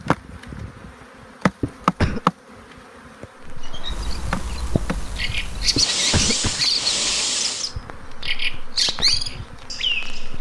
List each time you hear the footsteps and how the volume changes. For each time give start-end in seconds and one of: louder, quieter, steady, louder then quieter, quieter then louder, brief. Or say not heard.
not heard.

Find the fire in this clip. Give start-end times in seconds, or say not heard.
3.4-10.2.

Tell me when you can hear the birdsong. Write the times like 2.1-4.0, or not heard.
3.6-10.3.